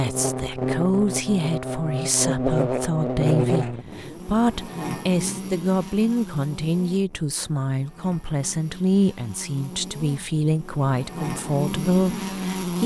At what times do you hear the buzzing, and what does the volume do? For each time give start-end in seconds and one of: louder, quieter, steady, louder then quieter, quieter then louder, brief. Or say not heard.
0.0-12.8 quieter then louder.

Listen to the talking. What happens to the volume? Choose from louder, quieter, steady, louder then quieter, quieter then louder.
steady.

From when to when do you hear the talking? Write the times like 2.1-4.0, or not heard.
0.0-12.8.